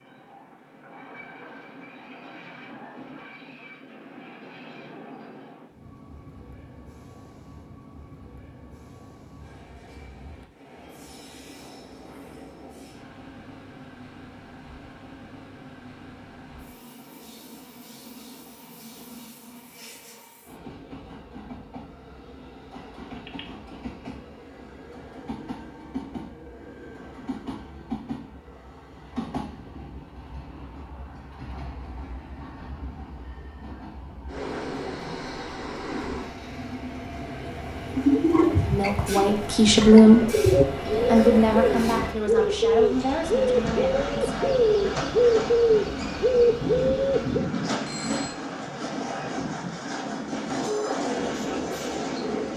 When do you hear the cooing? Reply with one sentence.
You can hear the cooing from 38.0 to 47.5 s.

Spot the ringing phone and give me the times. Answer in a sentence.
You can hear the ringing phone from 23.0 to 23.4 s and from 47.2 to 48.4 s.